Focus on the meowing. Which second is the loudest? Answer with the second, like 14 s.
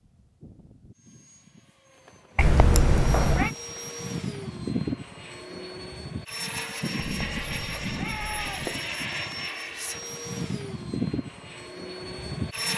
3 s.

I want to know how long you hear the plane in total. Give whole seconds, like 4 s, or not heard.
13 s.